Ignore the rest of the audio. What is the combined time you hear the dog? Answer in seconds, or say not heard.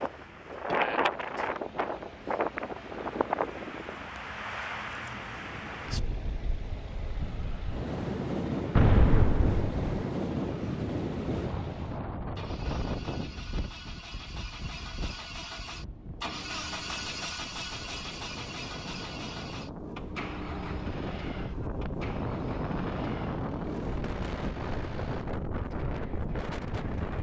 not heard.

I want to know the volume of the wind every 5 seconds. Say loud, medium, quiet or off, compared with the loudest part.
loud, loud, loud, medium, loud, loud.